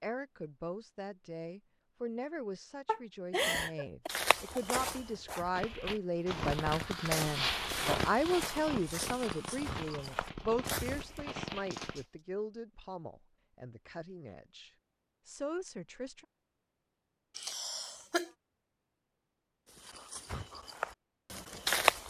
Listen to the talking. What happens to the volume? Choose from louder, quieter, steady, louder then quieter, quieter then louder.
louder then quieter.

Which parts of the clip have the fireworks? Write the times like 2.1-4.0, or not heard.
5.5-12.1.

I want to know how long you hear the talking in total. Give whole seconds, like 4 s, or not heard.
16 s.